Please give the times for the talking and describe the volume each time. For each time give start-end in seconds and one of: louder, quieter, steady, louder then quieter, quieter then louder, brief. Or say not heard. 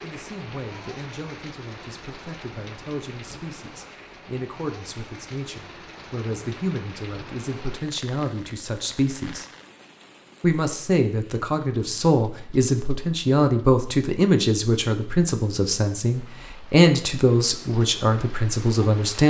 0.0-9.4 louder
10.4-19.2 steady.